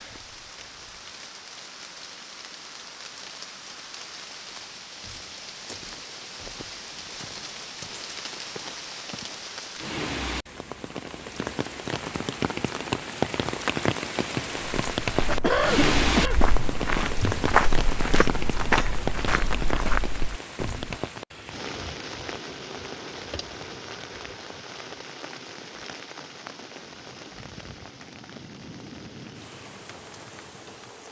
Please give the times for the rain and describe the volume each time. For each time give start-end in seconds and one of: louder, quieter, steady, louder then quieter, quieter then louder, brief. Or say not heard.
0.0-31.0 louder then quieter.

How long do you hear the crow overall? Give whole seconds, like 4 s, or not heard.
not heard.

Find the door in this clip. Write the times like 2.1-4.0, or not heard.
not heard.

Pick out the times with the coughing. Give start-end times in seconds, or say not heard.
15.2-16.4.